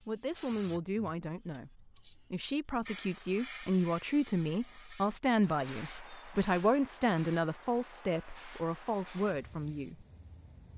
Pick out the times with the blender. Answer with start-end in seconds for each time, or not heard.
not heard.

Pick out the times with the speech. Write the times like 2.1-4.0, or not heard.
0.0-10.1.